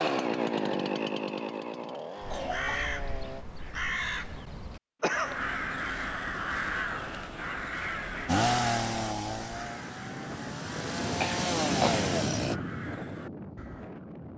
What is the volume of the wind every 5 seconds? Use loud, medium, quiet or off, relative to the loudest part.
off, quiet, loud.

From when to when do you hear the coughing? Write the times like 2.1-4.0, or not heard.
2.3-2.8, 5.0-5.4, 11.2-12.2.